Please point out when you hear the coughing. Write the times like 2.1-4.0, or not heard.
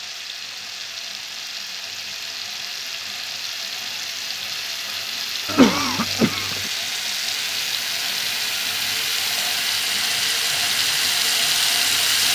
5.5-6.6.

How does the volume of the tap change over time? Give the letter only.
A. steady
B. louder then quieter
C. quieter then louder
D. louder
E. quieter
D.